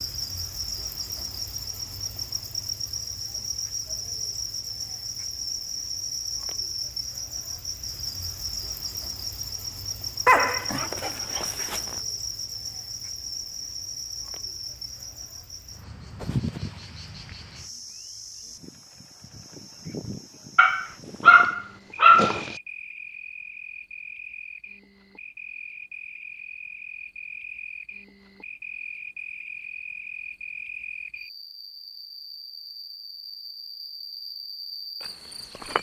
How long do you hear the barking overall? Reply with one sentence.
You can hear the barking for 4 seconds altogether.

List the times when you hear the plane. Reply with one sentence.
You can't hear the plane here.